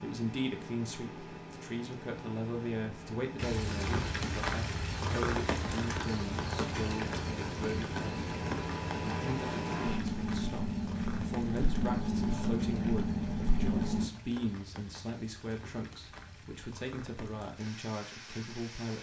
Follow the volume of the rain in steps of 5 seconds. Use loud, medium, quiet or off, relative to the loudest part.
loud, loud, quiet, quiet.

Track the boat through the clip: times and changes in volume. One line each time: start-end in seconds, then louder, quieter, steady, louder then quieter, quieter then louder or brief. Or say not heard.
0.0-14.1 louder.